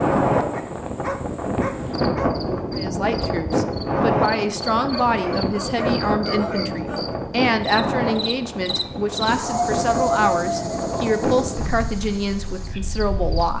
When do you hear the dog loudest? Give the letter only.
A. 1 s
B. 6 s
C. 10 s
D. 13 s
C.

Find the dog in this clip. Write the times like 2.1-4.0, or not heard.
0.5-2.8, 4.8-7.2, 9.3-11.2.